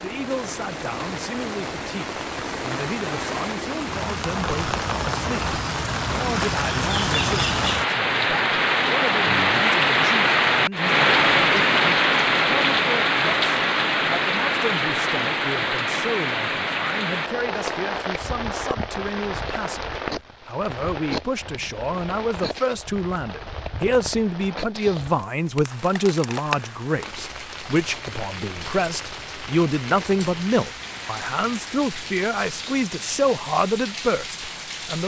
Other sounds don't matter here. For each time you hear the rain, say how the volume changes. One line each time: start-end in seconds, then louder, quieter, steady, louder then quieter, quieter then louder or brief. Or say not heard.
0.0-35.0 louder then quieter.